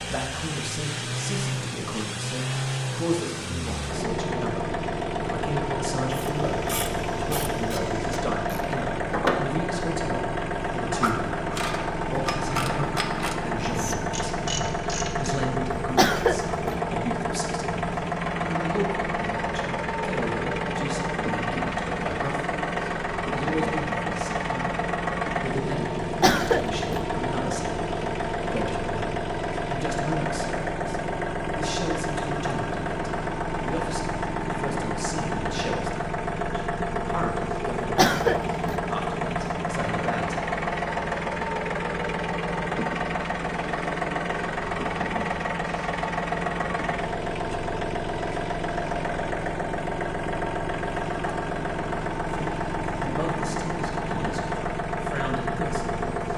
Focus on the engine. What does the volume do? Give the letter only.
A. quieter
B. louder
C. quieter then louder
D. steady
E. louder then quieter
D.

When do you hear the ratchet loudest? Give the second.
9 s.